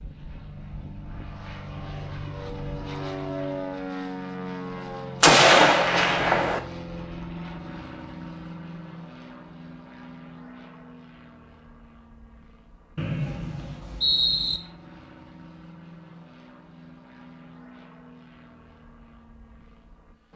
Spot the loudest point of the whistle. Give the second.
14 s.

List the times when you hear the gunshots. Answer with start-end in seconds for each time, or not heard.
5.2-6.6.